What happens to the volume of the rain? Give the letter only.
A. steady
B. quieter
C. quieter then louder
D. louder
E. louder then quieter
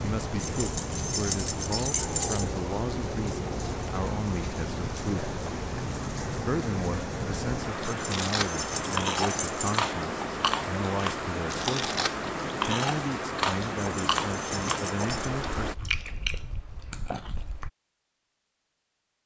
A.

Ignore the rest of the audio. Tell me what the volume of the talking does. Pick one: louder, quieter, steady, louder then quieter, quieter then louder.
steady.